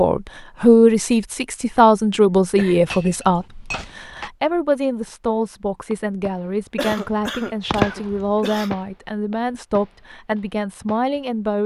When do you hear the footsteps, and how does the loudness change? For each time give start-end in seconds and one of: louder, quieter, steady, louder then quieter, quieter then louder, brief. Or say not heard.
not heard.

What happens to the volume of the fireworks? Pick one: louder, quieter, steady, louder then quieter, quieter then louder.
louder then quieter.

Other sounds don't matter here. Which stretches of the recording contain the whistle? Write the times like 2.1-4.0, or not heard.
not heard.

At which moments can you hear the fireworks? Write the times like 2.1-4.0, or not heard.
5.9-11.2.